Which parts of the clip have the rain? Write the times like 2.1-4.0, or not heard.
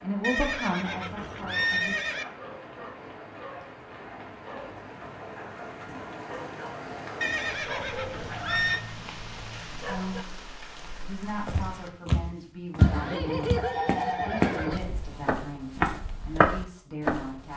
0.0-11.9.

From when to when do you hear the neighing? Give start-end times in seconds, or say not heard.
0.2-2.2, 7.2-8.8, 12.8-14.8.